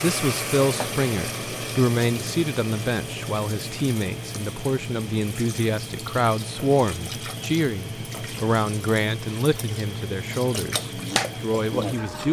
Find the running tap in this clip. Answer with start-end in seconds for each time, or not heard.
0.0-12.2.